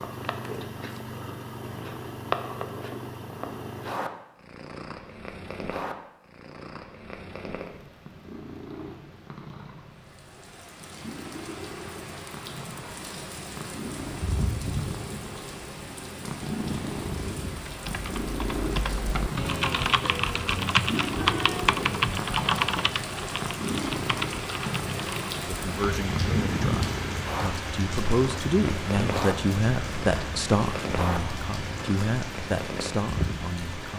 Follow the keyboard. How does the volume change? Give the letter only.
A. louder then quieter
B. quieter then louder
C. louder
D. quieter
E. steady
A.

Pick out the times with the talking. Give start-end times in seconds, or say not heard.
25.4-33.9.